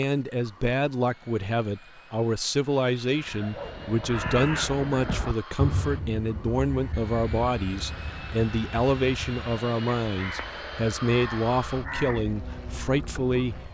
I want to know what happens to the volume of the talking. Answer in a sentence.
The volume of the talking stays about the same.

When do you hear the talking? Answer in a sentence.
You can hear the talking from 0.0 to 13.7 s.